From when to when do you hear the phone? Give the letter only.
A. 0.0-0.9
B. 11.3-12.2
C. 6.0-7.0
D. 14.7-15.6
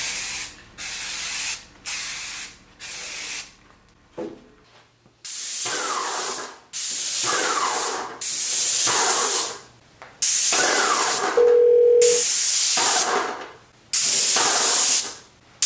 B.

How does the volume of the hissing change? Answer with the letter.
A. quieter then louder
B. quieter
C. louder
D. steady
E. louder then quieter
C.